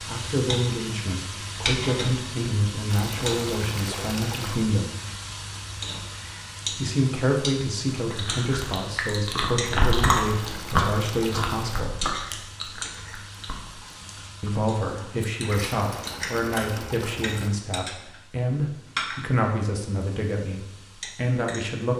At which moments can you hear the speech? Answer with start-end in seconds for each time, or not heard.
0.1-4.9, 6.7-11.9, 14.4-21.9.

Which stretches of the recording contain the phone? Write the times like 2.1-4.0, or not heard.
not heard.